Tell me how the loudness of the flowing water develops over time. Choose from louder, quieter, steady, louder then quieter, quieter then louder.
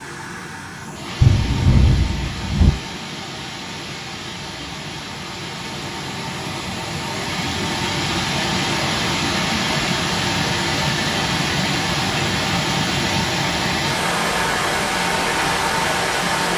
louder.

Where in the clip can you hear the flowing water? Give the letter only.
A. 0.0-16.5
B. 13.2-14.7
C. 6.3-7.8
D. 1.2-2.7
A.